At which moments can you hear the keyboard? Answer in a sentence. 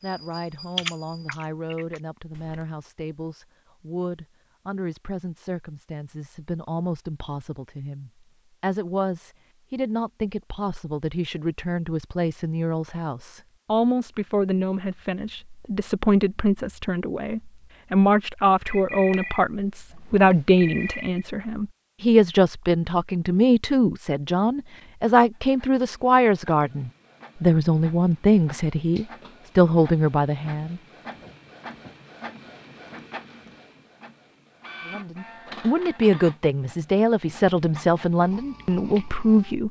The keyboard can be heard from 0.0 to 2.6 s.